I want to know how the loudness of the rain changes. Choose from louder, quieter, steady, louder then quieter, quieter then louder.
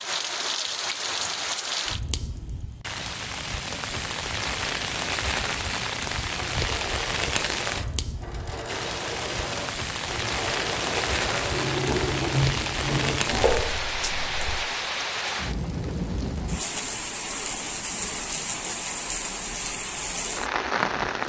steady.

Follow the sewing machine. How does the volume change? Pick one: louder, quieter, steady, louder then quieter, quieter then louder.
louder.